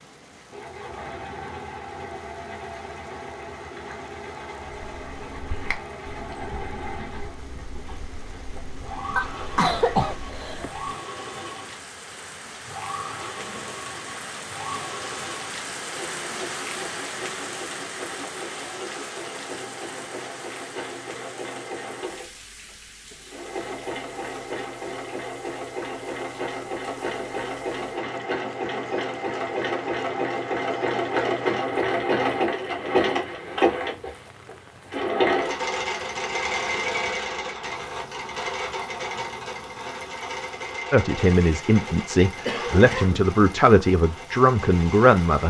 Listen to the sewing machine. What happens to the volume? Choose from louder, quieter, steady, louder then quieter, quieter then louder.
louder then quieter.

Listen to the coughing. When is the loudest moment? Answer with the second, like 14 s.
10 s.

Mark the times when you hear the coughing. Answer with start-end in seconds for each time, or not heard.
9.2-10.7, 42.5-43.3.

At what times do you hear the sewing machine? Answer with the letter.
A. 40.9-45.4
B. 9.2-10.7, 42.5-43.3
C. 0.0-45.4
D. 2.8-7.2
C.